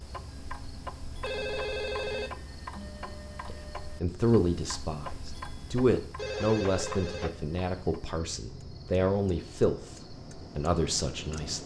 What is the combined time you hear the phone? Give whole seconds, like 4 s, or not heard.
2 s.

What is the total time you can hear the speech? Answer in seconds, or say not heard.
8 s.